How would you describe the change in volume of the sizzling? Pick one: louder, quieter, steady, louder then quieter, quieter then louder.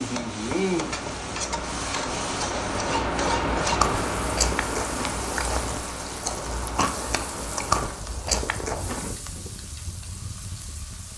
quieter.